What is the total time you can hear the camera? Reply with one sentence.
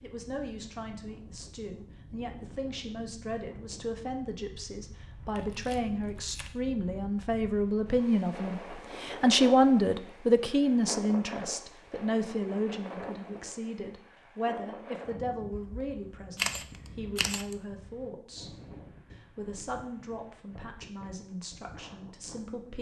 You can hear the camera for 3 seconds altogether.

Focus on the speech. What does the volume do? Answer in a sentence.
The loudness of the speech goes up, then down.